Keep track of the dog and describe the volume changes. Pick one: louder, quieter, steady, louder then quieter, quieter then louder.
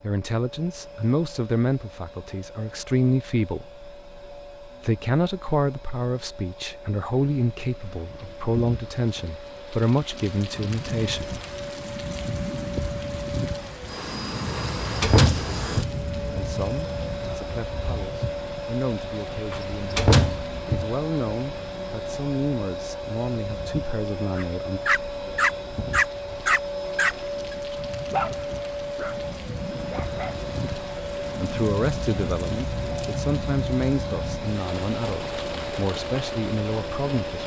quieter.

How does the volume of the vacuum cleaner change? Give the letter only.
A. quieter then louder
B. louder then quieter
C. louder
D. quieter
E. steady
C.